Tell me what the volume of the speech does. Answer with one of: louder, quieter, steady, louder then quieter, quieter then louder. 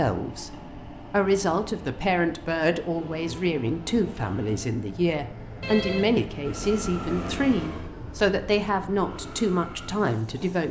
steady.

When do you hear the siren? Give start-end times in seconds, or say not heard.
not heard.